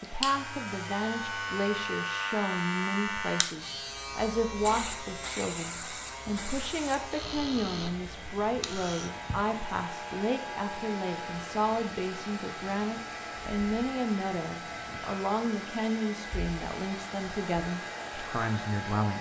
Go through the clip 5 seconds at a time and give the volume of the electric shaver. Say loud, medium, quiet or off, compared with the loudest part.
loud, medium, medium, medium.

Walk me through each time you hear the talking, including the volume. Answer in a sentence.
The talking can be heard from 0.0 to 19.1 s, at a steady volume.